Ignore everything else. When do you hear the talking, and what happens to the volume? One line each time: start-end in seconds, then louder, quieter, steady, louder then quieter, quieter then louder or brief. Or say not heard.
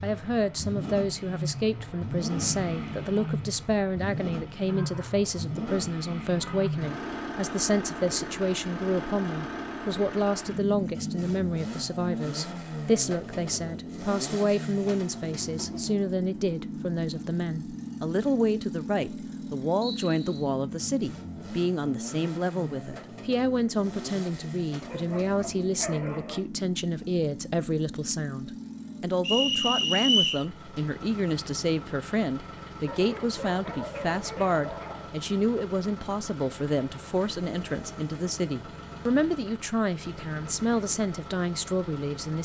0.0-42.3 steady.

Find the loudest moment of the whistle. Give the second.
30 s.